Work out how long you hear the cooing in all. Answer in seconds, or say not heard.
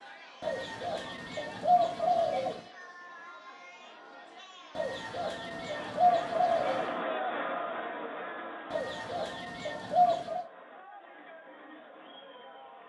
6 s.